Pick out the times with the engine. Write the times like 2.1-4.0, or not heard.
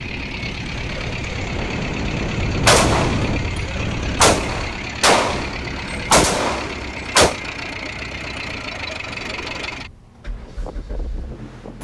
0.0-11.7.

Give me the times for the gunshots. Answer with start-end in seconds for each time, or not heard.
2.6-7.4.